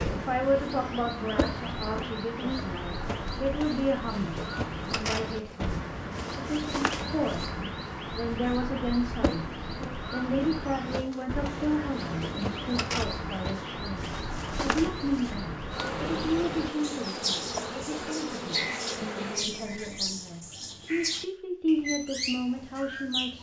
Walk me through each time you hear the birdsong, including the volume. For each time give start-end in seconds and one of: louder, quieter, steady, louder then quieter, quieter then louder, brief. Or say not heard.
0.0-23.3 steady.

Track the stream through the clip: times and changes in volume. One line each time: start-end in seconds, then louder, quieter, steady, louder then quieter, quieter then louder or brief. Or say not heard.
not heard.